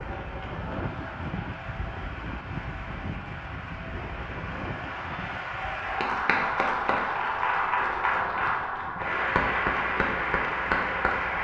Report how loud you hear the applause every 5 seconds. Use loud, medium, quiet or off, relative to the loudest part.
quiet, loud, loud.